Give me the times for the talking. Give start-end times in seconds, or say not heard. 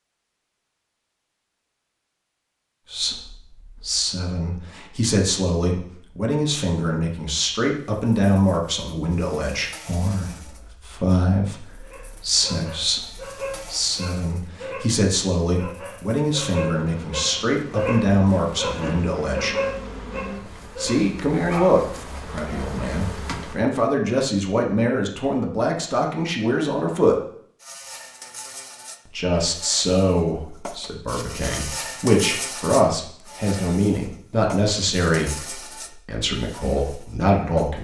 2.9-19.6, 20.8-27.2, 29.1-37.7.